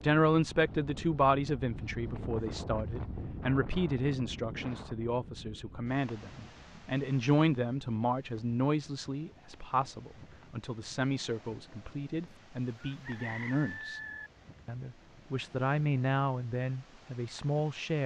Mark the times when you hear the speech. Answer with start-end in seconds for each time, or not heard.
0.0-14.0, 14.7-18.0.